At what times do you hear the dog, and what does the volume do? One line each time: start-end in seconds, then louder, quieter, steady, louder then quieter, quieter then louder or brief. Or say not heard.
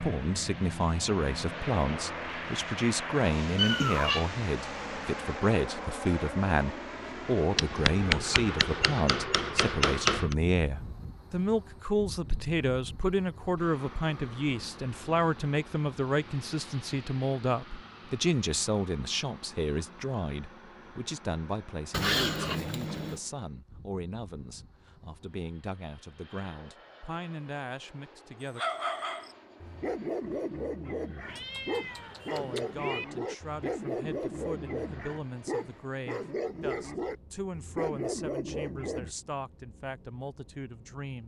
28.6-39.1 steady.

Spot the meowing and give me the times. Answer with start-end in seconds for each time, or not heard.
3.5-4.2, 21.9-23.2, 31.2-33.0.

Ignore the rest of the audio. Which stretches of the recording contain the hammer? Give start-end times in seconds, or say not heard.
7.5-10.3.